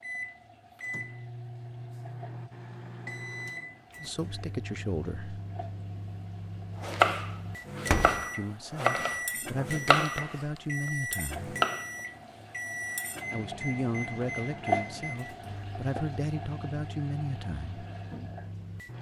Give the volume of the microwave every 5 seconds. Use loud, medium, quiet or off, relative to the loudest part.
loud, loud, loud, medium.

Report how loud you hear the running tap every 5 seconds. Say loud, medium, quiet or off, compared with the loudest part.
quiet, quiet, loud, medium.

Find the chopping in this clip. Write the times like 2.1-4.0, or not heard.
6.8-10.4, 11.6-12.4.